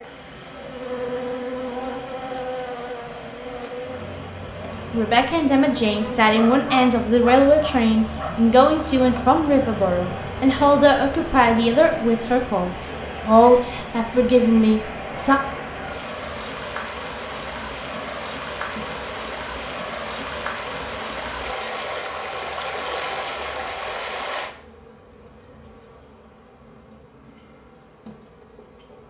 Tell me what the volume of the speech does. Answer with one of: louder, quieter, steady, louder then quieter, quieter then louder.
steady.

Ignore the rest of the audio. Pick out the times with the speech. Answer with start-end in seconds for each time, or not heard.
4.9-15.4.